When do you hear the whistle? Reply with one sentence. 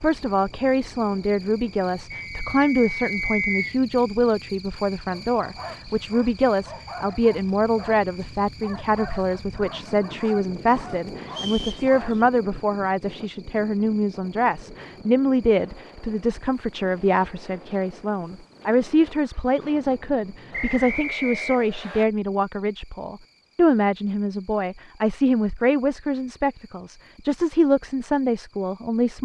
The whistle can be heard from 2.1 to 3.8 s, from 11.2 to 12.2 s and from 20.5 to 22.1 s.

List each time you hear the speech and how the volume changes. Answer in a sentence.
You can hear the speech from 0.0 to 29.2 s, at a steady volume.